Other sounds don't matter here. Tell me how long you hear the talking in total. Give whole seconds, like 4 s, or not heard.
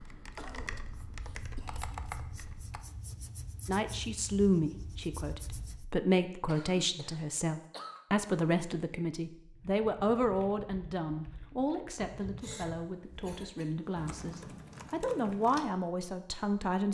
13 s.